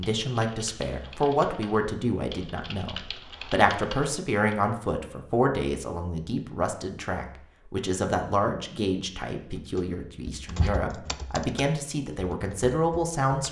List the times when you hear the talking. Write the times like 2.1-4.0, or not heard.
0.0-13.4.